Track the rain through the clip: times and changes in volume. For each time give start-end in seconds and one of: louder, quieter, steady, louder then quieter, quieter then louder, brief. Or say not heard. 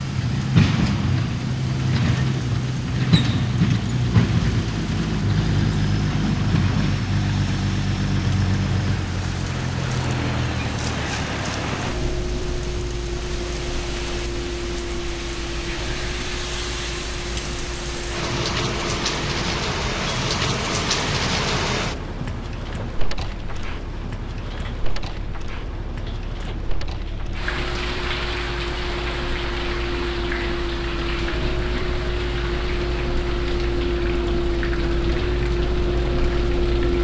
0.0-36.9 louder then quieter.